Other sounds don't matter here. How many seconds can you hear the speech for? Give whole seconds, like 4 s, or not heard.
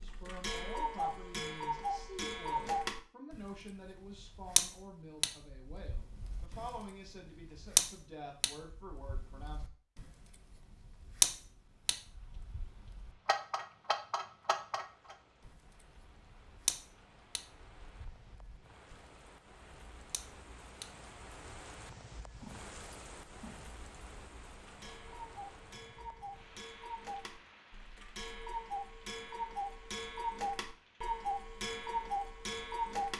10 s.